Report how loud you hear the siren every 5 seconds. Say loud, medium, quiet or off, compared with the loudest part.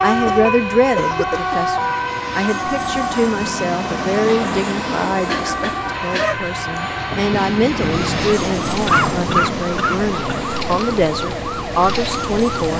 loud, medium, loud.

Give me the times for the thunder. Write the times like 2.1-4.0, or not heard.
7.1-9.6.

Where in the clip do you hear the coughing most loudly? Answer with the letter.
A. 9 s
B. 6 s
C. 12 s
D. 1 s
A.